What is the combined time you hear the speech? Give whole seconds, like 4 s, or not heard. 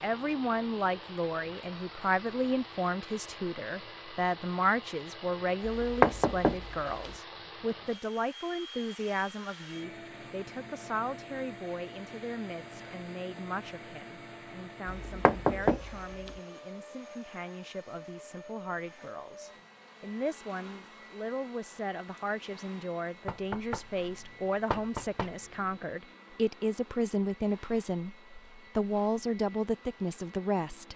31 s.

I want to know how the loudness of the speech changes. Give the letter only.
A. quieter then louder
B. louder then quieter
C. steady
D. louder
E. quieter
A.